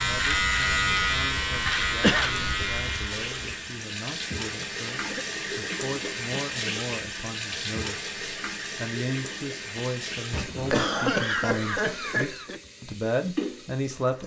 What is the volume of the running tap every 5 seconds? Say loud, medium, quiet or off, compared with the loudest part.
loud, loud, medium.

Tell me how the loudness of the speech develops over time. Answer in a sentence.
The volume of the speech goes up.